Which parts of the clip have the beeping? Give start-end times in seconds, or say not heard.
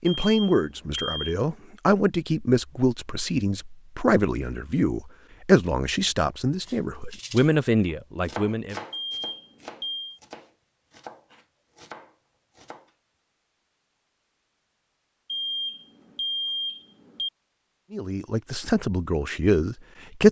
0.2-1.3, 8.9-10.2, 15.2-17.3.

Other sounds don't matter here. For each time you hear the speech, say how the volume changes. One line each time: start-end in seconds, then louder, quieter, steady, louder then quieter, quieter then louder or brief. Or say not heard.
0.0-8.8 steady
17.9-20.2 brief.